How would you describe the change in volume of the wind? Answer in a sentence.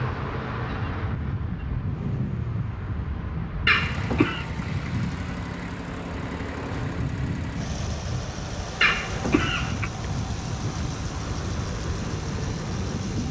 The volume of the wind stays about the same.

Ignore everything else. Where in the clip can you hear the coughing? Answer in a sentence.
You can hear the coughing from 3.6 to 4.5 s and from 8.8 to 9.9 s.